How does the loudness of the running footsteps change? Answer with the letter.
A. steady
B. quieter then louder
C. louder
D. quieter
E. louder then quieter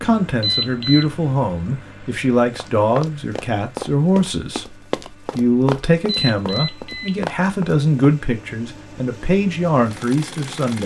A.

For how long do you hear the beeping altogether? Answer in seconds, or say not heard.
2 s.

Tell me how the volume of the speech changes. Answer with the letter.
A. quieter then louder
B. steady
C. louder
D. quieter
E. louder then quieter
B.